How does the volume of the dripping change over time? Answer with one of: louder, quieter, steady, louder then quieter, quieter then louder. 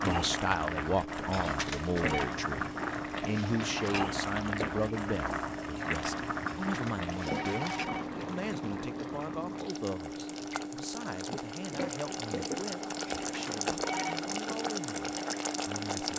steady.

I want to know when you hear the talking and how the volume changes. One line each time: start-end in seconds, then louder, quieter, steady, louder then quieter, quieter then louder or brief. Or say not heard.
0.0-16.1 quieter.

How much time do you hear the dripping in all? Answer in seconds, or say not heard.
16 s.